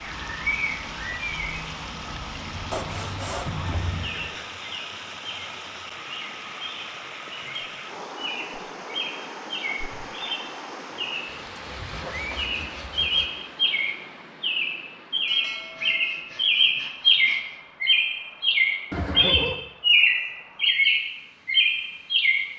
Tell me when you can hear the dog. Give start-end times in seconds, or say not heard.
not heard.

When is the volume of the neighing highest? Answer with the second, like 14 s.
19 s.